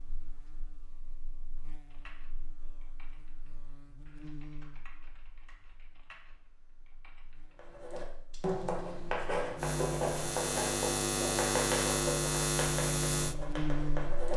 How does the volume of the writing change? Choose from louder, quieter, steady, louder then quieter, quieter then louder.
quieter.